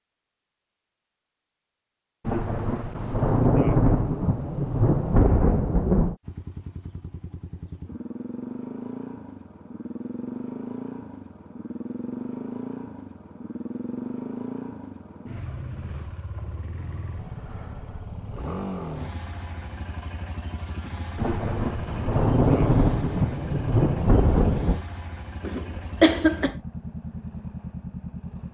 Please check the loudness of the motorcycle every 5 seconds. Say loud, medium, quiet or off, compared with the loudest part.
off, loud, loud, loud, medium, loud.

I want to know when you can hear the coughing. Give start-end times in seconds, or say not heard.
25.4-26.6.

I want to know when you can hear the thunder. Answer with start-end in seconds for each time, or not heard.
2.2-6.2, 21.1-24.9.